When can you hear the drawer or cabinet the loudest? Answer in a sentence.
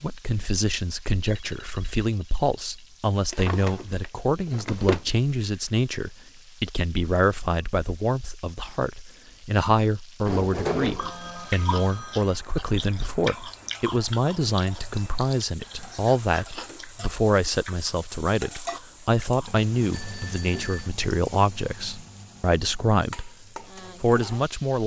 The loudest moment of the drawer or cabinet is at 11 seconds.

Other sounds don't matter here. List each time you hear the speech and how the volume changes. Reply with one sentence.
The speech can be heard from 0.0 to 23.3 s, at a steady volume; and briefly from 24.0 to 24.8 s.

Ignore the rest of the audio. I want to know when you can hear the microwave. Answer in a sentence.
You can't hear the microwave here.